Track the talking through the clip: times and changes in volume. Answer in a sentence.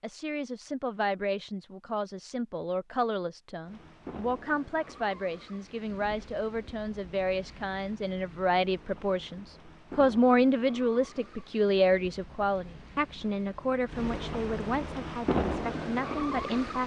The talking can be heard from 0.0 to 16.8 s, getting louder then quieter.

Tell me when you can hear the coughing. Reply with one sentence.
The coughing can't be heard in this clip.